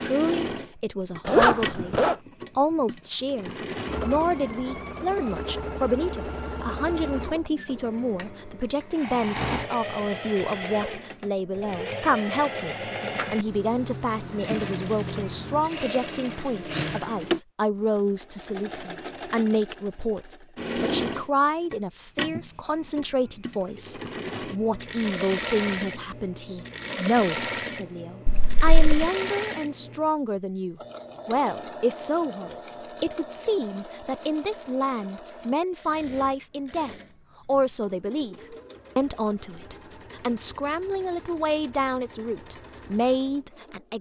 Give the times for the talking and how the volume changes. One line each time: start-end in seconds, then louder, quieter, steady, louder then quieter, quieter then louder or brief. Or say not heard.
0.0-43.9 steady.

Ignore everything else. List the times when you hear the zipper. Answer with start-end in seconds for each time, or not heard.
1.2-2.1, 28.2-28.9.